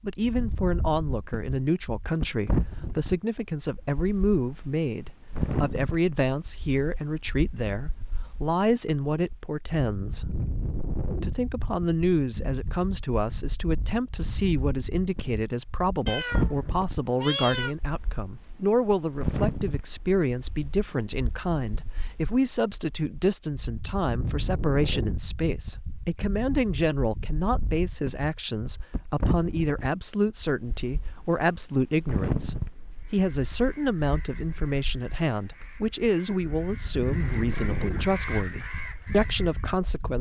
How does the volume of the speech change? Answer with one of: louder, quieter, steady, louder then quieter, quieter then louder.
steady.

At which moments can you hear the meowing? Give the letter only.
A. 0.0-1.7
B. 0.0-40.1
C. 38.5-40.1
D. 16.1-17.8
D.